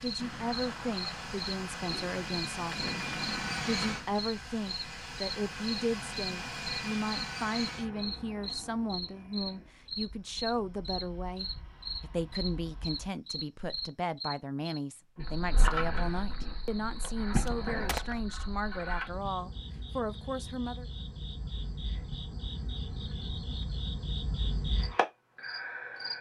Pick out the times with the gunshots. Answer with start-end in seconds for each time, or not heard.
0.1-4.1, 17.0-18.4.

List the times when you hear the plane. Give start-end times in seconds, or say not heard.
0.0-13.1.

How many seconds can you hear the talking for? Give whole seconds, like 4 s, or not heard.
21 s.